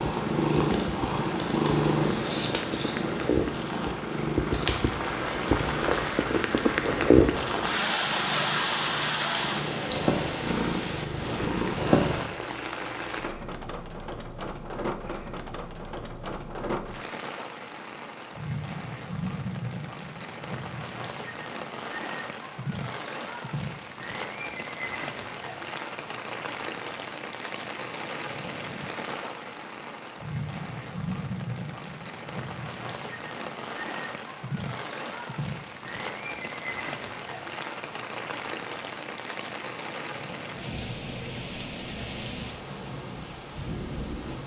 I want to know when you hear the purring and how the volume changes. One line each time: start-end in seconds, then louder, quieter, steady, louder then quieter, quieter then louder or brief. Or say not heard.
0.0-12.3 quieter then louder.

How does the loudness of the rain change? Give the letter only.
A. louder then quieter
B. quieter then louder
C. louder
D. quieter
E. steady
D.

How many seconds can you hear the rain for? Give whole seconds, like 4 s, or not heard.
44 s.